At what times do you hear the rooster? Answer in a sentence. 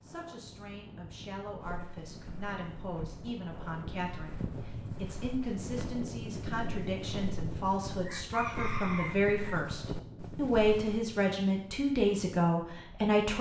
You can hear the rooster from 8.1 to 9.7 s.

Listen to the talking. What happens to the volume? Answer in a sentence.
The volume of the talking goes up.